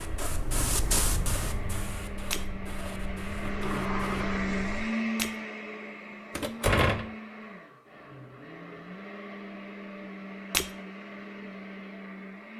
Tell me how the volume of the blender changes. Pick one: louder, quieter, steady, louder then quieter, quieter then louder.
louder then quieter.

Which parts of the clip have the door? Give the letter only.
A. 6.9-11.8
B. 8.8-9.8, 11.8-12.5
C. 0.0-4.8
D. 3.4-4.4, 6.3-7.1
D.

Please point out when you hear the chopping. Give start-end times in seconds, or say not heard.
not heard.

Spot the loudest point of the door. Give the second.
7 s.